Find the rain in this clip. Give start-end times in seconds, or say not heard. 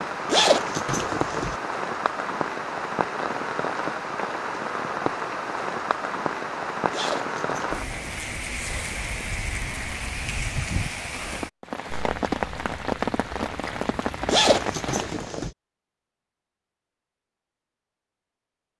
0.0-15.3.